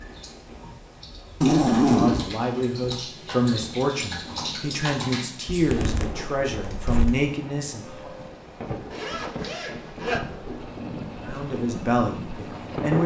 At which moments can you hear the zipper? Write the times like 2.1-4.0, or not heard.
1.4-2.3, 5.5-7.1, 8.9-10.2.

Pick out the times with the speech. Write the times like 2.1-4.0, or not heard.
1.8-8.1, 11.2-13.0.